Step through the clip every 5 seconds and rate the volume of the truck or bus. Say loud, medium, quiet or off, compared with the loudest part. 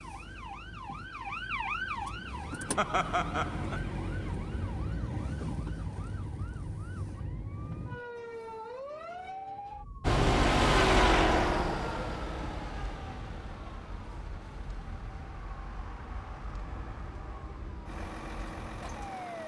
off, off, loud, quiet.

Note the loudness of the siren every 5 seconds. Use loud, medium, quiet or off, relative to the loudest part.
loud, loud, quiet, medium.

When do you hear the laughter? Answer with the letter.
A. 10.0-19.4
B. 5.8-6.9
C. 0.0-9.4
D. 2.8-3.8
D.